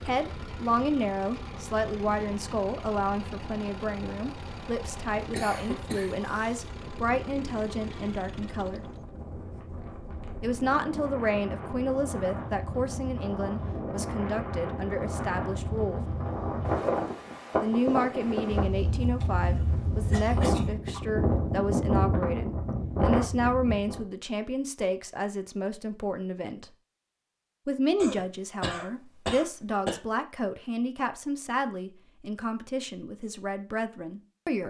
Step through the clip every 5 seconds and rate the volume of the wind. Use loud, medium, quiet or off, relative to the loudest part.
quiet, quiet, medium, loud, loud, off, off.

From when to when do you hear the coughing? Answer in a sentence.
You can hear the coughing from 5.3 to 6.5 s, from 19.2 to 21.0 s and from 27.9 to 30.0 s.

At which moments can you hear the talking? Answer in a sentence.
You can hear the talking from 0.0 to 8.8 s, from 10.4 to 16.0 s, from 17.6 to 26.7 s and from 27.6 to 34.6 s.